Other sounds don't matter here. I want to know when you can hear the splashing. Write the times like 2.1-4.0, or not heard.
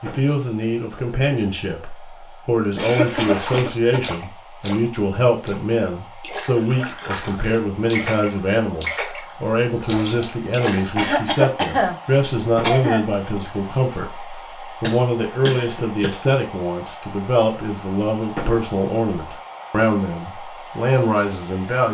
3.0-11.2.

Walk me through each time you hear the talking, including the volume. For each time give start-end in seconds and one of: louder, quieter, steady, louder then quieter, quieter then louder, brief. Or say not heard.
0.0-21.8 steady.